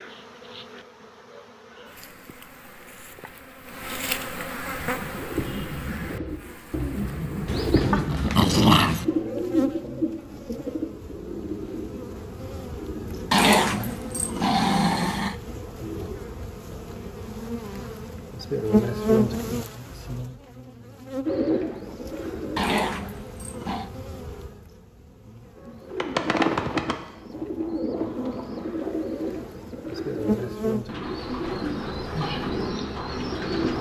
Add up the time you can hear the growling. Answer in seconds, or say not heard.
5 s.